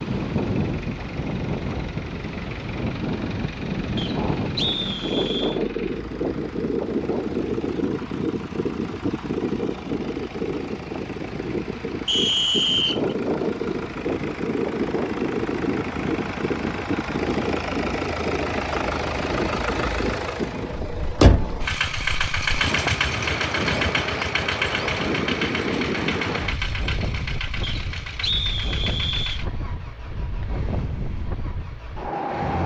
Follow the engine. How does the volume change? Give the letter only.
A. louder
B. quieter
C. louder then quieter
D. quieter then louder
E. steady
C.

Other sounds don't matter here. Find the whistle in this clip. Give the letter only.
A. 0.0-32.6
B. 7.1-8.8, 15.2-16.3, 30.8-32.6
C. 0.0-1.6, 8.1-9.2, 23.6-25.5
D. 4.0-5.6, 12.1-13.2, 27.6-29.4
D.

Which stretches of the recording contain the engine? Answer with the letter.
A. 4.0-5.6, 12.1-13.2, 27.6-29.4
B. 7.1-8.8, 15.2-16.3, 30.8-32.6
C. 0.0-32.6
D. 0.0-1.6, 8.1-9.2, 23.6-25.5
C.